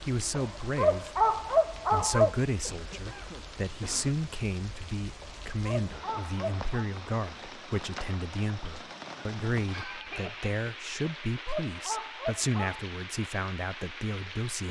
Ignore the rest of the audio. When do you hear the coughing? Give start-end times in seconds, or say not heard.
2.6-4.2, 9.7-10.6.